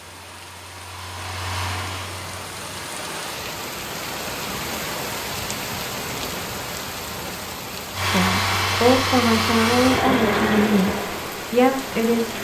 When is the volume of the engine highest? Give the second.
10 s.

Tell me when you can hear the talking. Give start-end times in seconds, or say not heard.
8.1-12.3.